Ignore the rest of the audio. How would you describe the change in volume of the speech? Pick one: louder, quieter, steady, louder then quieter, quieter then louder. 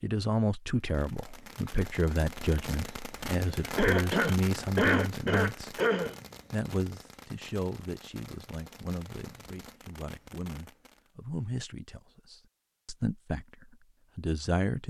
quieter then louder.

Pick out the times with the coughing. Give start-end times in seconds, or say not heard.
3.8-6.2.